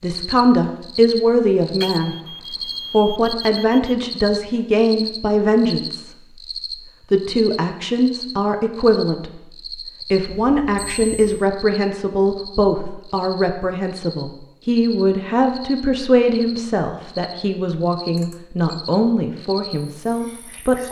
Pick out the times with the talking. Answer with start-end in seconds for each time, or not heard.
0.0-2.1, 2.9-6.1, 7.1-20.8.